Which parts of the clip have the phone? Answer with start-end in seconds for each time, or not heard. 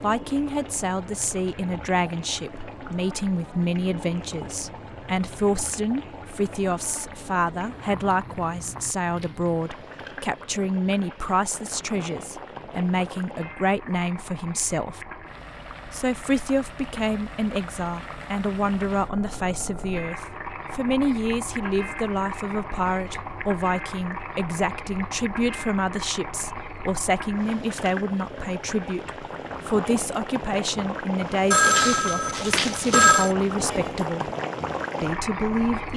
31.5-33.3.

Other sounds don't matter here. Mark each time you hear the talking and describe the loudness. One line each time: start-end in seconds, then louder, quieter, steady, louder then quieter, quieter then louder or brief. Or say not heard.
0.0-15.0 steady
15.8-34.3 steady
35.0-35.9 brief.